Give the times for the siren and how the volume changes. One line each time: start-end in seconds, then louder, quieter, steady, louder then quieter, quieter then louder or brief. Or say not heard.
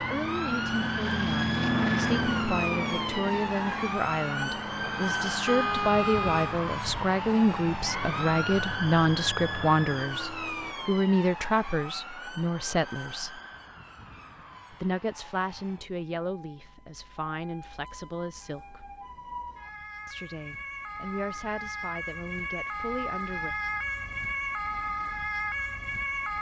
0.0-26.3 quieter then louder.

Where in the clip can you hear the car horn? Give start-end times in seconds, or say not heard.
5.5-6.6.